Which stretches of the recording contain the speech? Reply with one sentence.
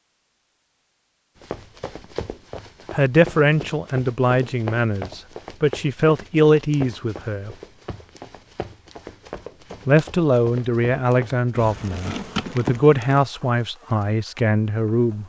You can hear the speech from 2.9 to 7.5 s and from 9.8 to 15.2 s.